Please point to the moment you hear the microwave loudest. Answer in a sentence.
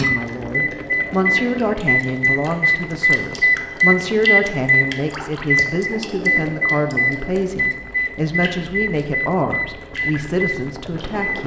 The volume of the microwave peaks at 4 seconds.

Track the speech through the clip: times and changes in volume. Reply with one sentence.
The speech can be heard from 0.0 to 11.4 s, at a steady volume.